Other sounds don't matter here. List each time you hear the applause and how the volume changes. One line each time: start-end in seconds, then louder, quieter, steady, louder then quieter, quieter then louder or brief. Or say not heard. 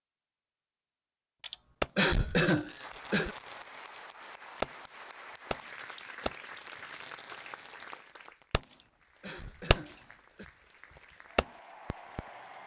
2.8-12.6 quieter then louder.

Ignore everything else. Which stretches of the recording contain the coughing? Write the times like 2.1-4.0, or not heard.
1.4-3.4, 8.7-10.4.